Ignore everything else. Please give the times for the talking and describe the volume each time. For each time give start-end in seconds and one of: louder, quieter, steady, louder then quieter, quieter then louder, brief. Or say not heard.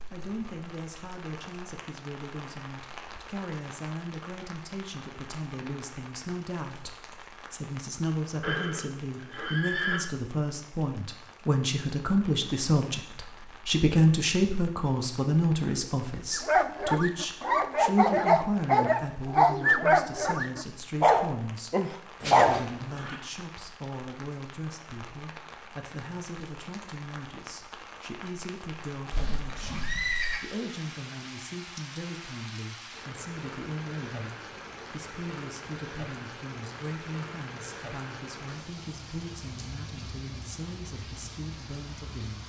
0.1-42.4 louder then quieter.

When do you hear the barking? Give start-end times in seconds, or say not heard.
16.3-22.6.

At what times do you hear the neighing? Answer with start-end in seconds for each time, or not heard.
8.4-10.0, 22.2-23.2, 29.1-30.4.